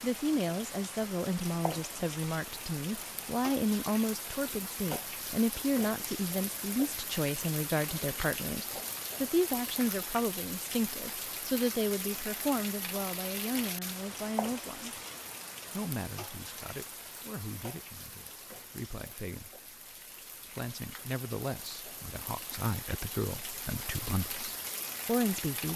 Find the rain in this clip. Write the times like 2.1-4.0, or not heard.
0.0-25.7.